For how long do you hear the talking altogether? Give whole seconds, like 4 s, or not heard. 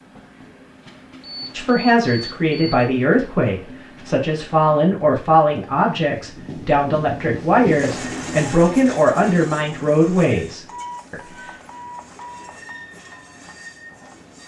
10 s.